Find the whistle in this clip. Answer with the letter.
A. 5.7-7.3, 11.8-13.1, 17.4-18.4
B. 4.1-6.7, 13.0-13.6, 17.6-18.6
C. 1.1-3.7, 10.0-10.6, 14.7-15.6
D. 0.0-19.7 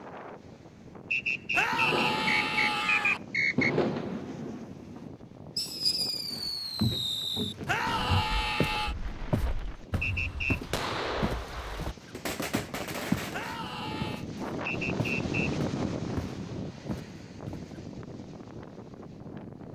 C.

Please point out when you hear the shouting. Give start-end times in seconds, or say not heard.
1.5-3.2, 7.7-8.9, 13.3-14.2.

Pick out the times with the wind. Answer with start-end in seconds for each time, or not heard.
0.0-19.7.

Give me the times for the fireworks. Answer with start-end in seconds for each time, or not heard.
1.7-13.8.